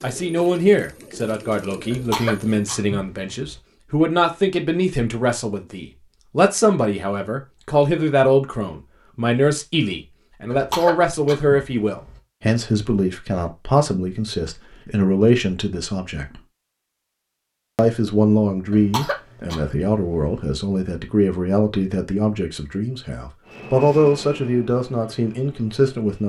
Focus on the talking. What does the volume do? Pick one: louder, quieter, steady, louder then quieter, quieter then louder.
steady.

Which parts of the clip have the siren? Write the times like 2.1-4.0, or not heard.
not heard.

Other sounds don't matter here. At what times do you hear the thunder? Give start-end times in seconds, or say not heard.
not heard.